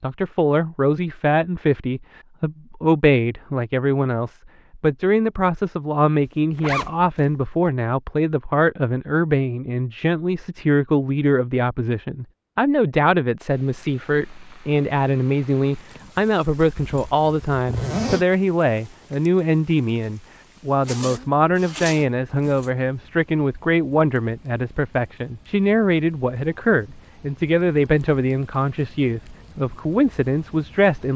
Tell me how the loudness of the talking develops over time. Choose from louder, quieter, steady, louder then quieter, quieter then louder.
steady.